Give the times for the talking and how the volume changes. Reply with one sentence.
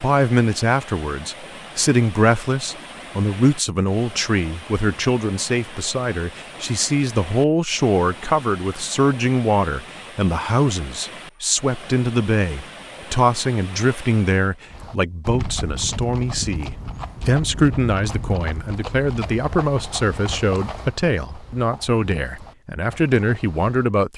You can hear the talking from 0.0 to 24.1 s, at a steady volume.